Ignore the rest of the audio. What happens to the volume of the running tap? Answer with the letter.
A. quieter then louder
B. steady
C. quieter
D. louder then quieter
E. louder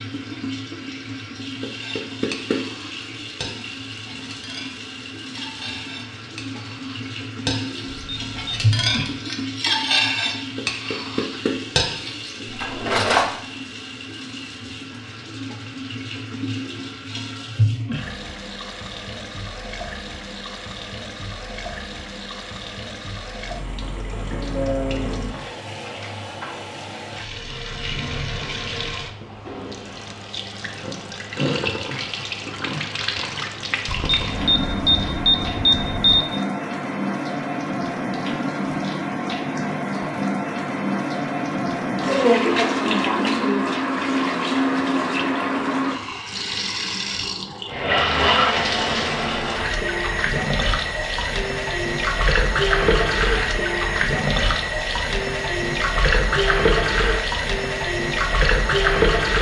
E.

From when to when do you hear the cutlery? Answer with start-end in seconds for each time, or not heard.
1.7-13.2.